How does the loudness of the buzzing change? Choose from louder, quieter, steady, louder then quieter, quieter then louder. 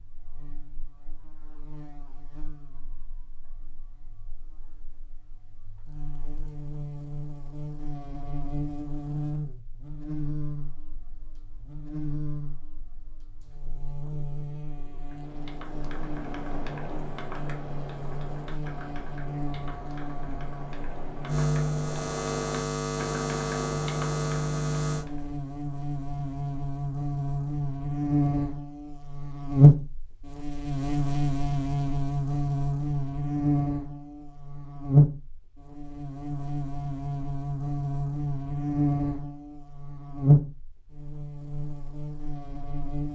louder.